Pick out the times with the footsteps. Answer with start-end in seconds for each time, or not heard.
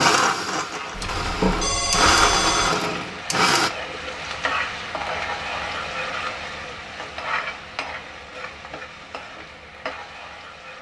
not heard.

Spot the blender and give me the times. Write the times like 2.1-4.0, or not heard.
0.0-3.7.